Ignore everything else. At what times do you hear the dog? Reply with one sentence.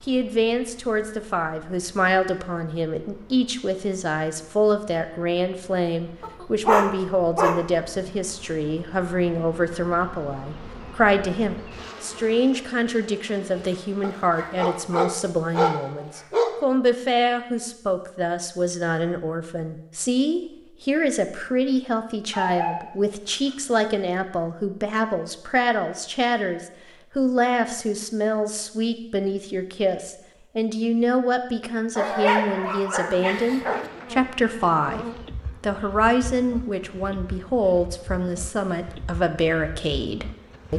You can hear the dog from 6.2 to 8.2 s, from 14.0 to 16.5 s, from 22.3 to 23.8 s and from 31.9 to 33.9 s.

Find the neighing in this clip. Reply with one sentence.
You can't hear the neighing here.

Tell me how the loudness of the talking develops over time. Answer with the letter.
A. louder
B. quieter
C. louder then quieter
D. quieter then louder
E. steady
E.